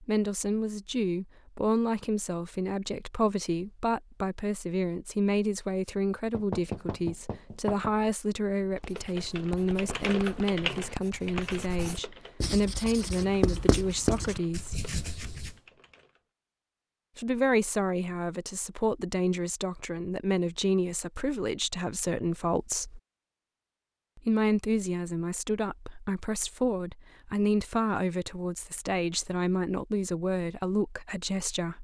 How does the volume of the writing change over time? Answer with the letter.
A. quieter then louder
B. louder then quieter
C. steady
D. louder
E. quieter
D.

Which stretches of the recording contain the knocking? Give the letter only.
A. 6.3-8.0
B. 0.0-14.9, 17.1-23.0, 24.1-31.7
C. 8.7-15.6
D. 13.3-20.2
A.